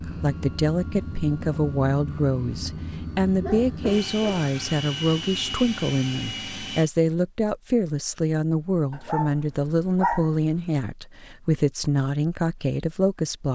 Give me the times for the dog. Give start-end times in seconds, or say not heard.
3.4-4.5, 8.9-10.7.